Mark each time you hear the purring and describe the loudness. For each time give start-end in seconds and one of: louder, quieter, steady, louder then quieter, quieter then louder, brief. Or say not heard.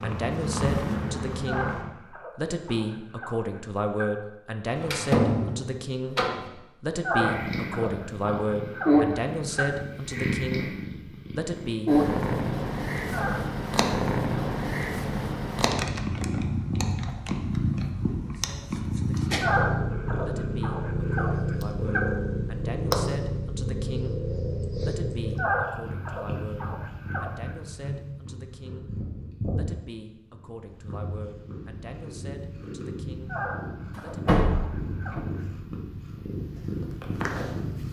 0.0-1.9 brief
7.2-37.8 quieter.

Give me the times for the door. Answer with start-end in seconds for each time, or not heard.
4.8-6.5, 34.0-35.2.